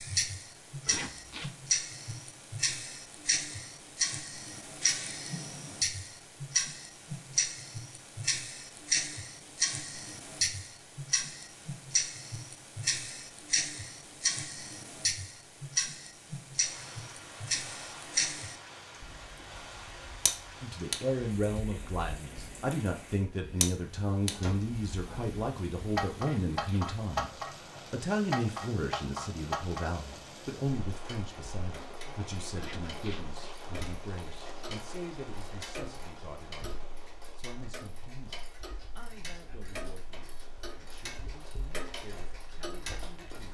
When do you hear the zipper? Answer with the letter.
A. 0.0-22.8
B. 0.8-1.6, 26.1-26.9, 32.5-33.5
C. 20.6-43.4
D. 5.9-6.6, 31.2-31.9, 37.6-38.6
B.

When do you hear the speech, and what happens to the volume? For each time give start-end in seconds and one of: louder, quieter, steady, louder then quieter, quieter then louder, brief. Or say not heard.
20.6-43.4 quieter.